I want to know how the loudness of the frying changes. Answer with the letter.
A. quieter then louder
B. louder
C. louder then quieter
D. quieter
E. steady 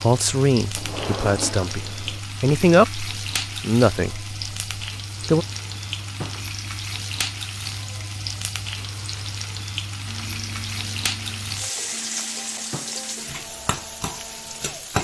E.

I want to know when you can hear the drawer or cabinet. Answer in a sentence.
You can hear the drawer or cabinet from 0.8 to 2.2 s, from 5.2 to 6.5 s and from 11.8 to 13.0 s.